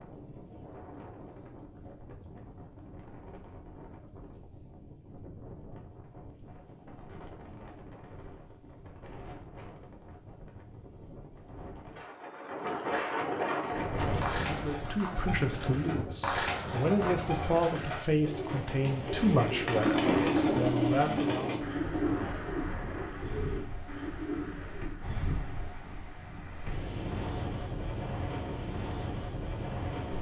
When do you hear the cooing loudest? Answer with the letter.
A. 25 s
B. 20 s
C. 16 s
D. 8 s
B.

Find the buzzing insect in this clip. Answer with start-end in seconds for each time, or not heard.
not heard.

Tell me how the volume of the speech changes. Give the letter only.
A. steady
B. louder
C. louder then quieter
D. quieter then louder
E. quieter
A.